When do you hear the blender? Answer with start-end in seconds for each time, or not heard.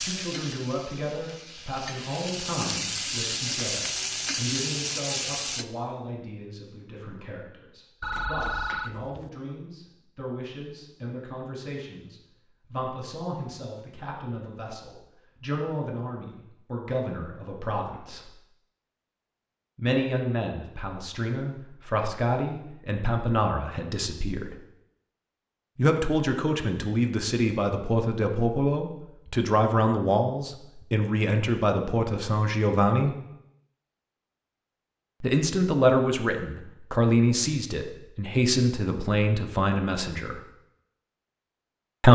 not heard.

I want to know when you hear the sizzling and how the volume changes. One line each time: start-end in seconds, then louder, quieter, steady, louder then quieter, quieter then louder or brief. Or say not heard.
0.0-5.7 louder.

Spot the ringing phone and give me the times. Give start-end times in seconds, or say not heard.
8.0-9.3.